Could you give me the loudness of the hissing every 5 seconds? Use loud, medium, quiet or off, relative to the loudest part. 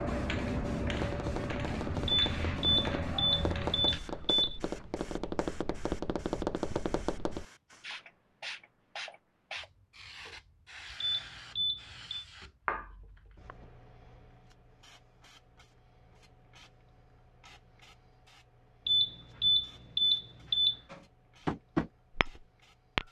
loud, medium, medium, quiet, quiet.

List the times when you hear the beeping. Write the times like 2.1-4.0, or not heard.
2.0-4.6, 11.0-12.2, 18.9-20.8.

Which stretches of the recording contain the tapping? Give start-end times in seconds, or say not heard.
0.8-7.5, 20.9-23.0.